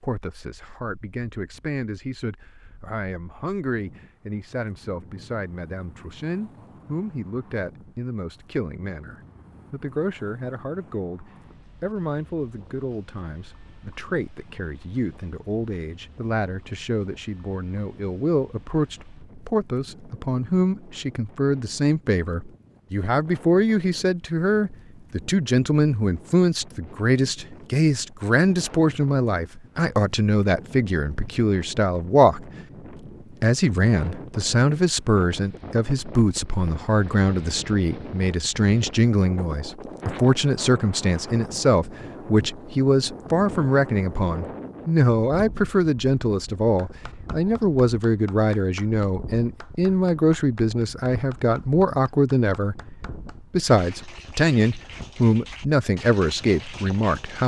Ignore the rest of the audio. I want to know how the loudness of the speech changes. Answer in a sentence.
The loudness of the speech goes up.